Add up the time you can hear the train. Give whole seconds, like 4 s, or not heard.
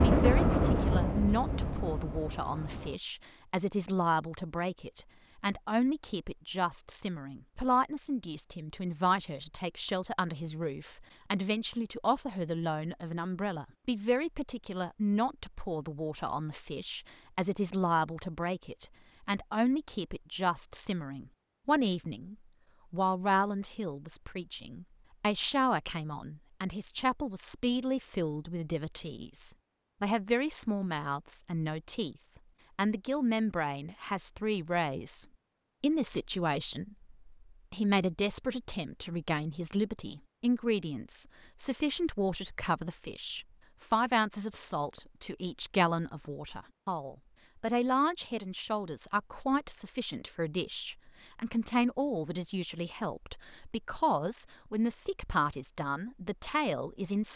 3 s.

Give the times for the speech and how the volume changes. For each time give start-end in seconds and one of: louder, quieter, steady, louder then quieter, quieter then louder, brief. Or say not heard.
0.0-32.1 steady
32.8-57.3 steady.